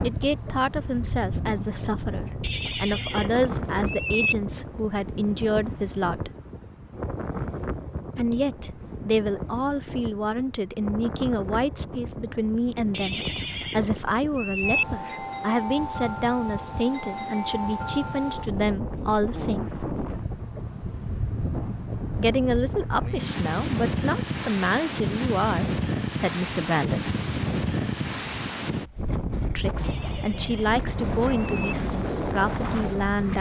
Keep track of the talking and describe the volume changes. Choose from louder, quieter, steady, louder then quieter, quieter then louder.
steady.